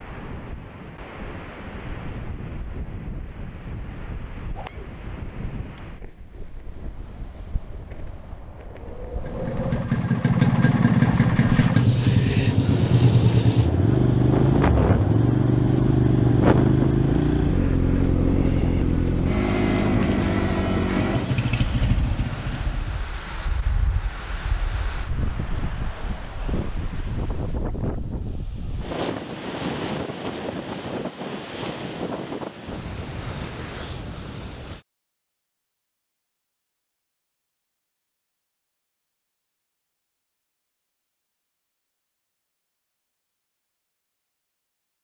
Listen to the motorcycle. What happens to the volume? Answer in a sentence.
The loudness of the motorcycle goes down.